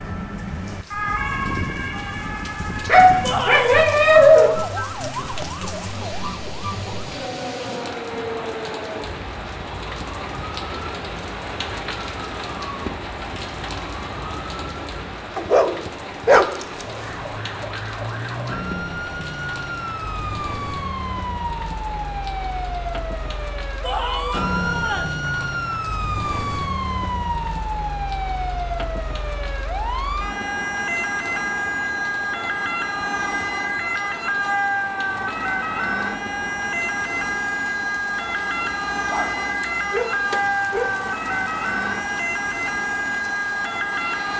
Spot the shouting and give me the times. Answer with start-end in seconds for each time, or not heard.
3.2-3.9, 23.8-25.1.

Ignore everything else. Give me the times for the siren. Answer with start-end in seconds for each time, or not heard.
0.0-15.3, 16.7-44.3.